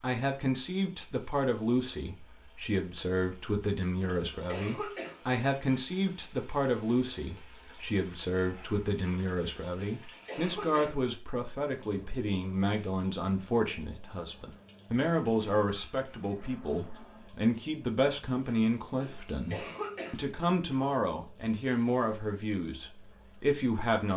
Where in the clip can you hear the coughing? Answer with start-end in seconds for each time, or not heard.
4.0-5.2, 9.9-11.0, 19.0-20.2.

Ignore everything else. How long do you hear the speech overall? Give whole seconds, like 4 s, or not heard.
24 s.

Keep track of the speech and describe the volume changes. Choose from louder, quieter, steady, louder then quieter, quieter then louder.
steady.